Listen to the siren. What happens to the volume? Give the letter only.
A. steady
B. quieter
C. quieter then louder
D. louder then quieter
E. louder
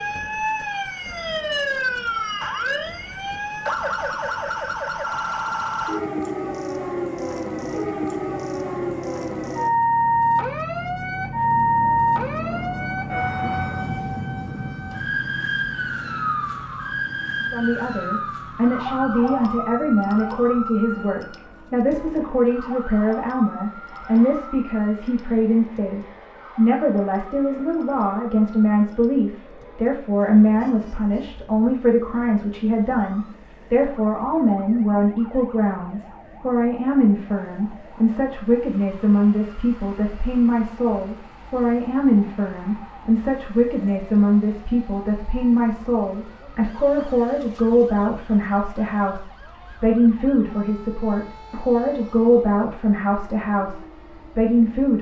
B.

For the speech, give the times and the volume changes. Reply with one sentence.
The speech can be heard from 17.5 to 54.9 s, at a steady volume.